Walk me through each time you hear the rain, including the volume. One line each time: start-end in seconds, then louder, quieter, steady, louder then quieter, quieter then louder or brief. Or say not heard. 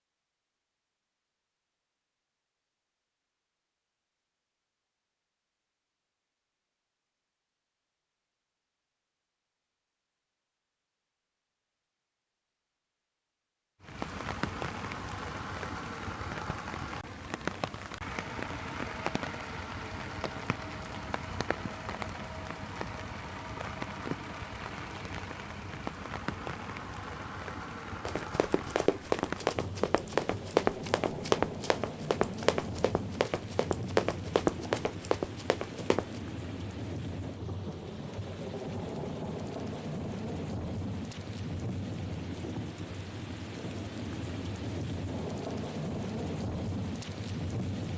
13.8-47.9 steady.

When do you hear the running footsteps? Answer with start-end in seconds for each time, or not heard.
28.1-36.2.